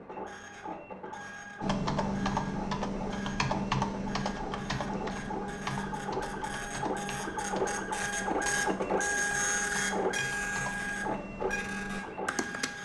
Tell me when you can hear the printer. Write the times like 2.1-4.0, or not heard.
0.0-12.8.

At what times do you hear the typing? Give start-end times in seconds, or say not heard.
1.6-12.7.